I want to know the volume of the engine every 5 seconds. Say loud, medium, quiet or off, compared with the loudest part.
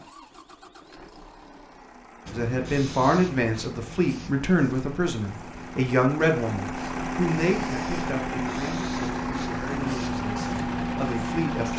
quiet, loud, loud.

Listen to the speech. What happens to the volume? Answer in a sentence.
The volume of the speech goes down.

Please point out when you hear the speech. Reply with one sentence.
You can hear the speech from 2.4 to 11.7 s.